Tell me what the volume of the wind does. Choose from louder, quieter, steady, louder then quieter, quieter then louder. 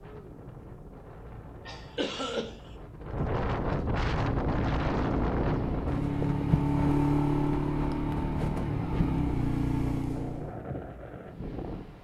louder then quieter.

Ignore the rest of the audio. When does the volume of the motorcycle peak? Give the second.
7 s.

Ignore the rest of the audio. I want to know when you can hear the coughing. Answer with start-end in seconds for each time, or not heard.
1.6-2.8.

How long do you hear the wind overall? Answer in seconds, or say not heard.
12 s.